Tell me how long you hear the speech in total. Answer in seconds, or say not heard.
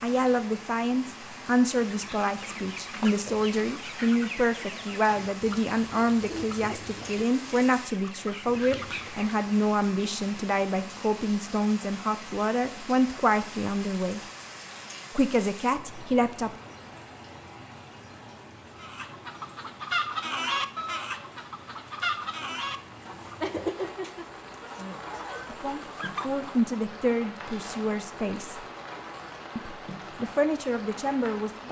21 s.